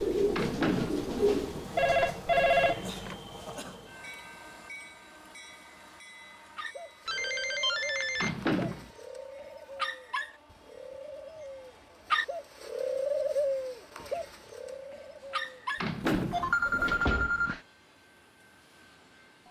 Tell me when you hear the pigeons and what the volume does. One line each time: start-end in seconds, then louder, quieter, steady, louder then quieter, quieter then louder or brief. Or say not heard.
0.0-1.6 brief
6.5-17.1 louder then quieter.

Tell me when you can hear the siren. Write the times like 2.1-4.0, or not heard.
not heard.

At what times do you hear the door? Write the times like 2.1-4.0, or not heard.
0.3-0.9, 8.2-8.9, 15.8-16.5.